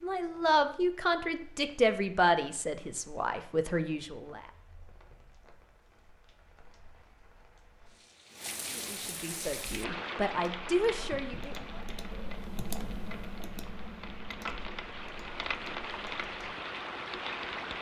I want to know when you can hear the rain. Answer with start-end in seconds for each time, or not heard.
0.0-17.7.